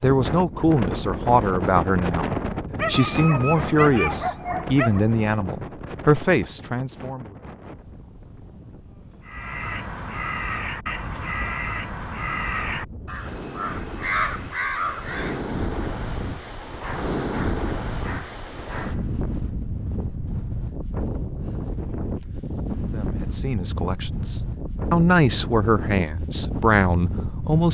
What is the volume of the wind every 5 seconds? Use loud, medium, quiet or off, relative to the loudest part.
loud, medium, medium, loud, loud, loud.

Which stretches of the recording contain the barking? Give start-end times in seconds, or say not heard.
2.8-5.0, 16.6-19.1.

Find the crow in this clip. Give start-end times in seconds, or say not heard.
9.2-15.6.